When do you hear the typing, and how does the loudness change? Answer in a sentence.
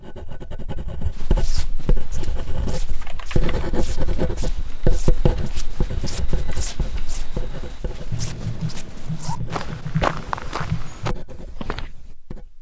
You can hear the typing from 3.0 to 11.2 s, getting louder.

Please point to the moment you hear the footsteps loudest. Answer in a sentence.
The loudest moment of the footsteps is at 10 seconds.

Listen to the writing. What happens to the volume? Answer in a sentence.
The loudness of the writing goes up, then down.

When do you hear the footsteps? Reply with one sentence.
The footsteps can be heard from 1.1 to 12.2 s.